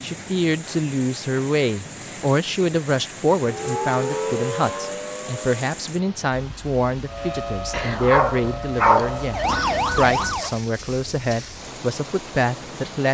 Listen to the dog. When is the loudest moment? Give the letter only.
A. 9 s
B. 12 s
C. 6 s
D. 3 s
A.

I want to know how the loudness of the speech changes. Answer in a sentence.
The volume of the speech stays about the same.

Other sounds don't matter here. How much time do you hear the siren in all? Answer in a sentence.
The siren can be heard for 6 seconds in total.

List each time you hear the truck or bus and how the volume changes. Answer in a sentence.
You can't hear the truck or bus here.